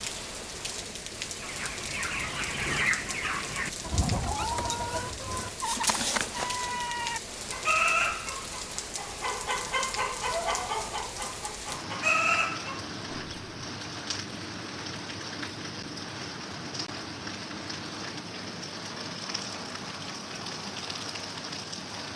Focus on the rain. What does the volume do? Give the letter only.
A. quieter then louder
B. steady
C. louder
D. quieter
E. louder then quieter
B.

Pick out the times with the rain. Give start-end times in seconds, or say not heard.
0.0-22.1.